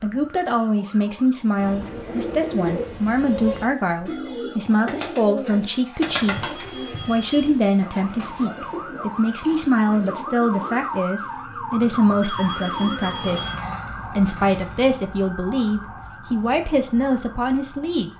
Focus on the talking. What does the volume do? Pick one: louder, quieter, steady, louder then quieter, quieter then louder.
steady.